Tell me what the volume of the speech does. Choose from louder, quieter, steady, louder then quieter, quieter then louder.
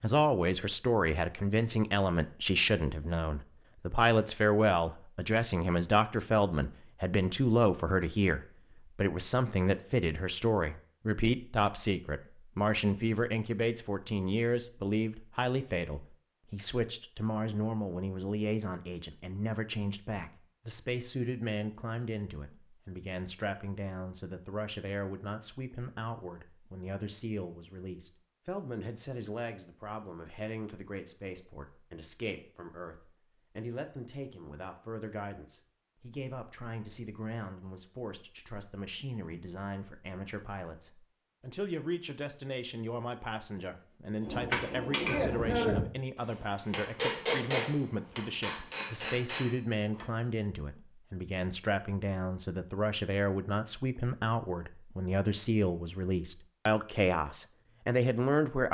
quieter then louder.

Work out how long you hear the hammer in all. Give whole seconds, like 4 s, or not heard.
6 s.